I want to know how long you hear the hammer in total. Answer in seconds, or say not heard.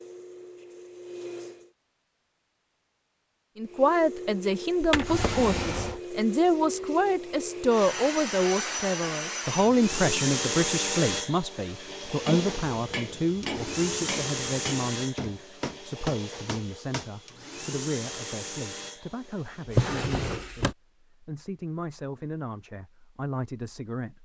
5 s.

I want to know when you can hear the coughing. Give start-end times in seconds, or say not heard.
not heard.